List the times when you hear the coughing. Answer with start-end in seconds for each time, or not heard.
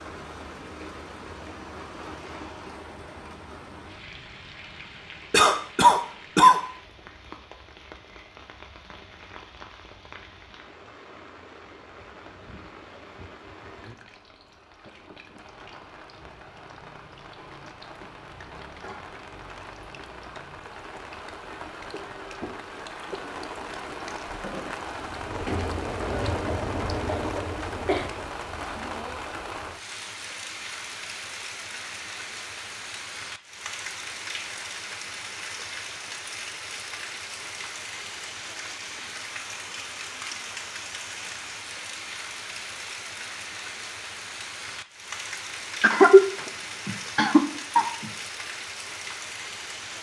5.3-6.6, 27.1-28.1, 45.8-48.1.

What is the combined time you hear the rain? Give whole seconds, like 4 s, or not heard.
50 s.